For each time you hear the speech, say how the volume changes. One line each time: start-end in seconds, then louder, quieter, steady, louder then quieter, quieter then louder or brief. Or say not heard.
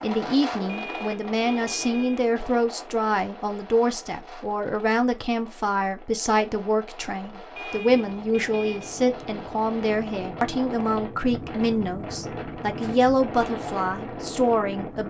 0.0-15.0 steady.